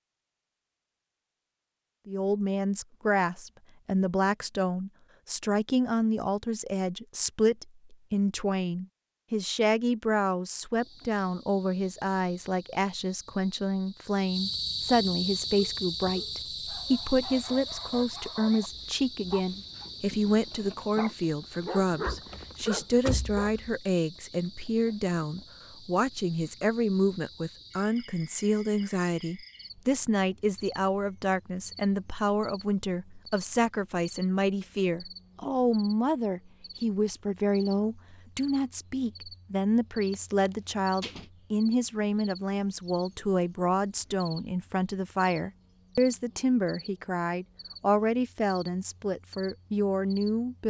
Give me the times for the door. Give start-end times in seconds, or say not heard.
22.3-23.6, 40.1-41.2.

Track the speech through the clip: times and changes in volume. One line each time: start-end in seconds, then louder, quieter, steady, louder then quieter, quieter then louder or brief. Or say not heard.
2.0-50.6 steady.